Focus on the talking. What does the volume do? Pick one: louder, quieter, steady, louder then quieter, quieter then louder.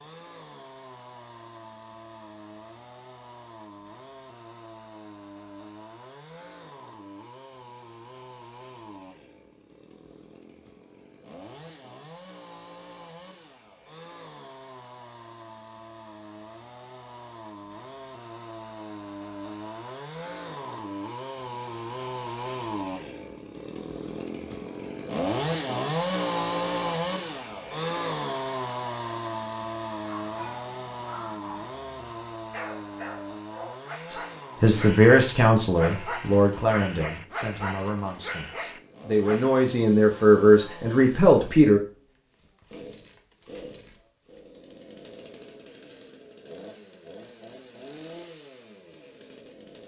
quieter then louder.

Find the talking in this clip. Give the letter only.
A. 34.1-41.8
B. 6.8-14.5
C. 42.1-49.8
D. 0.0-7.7
A.